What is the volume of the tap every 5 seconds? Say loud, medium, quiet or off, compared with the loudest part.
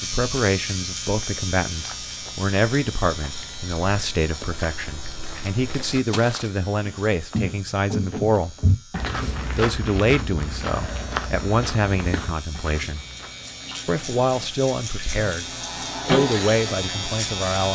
off, off, quiet, loud.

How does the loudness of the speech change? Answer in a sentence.
The loudness of the speech stays about the same.